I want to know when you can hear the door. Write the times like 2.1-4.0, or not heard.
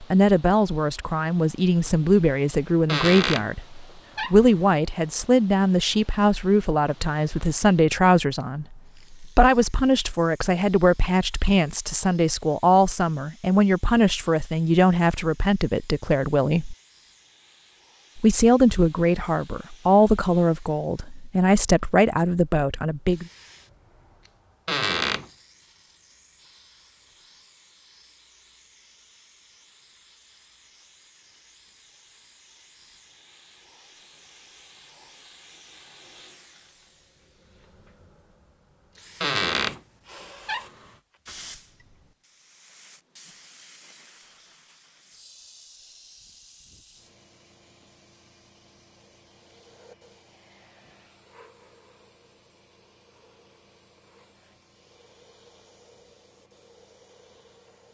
2.9-3.5, 4.2-4.7, 24.6-25.3, 39.2-40.9.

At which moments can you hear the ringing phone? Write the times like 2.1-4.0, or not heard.
not heard.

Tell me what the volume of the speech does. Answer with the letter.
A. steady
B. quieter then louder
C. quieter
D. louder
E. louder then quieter
A.